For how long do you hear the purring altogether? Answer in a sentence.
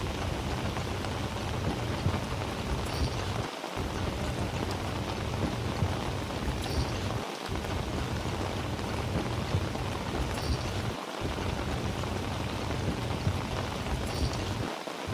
You can't hear the purring here.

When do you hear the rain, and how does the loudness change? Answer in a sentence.
The rain can be heard from 0.0 to 15.0 s, at a steady volume.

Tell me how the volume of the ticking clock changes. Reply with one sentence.
The loudness of the ticking clock stays about the same.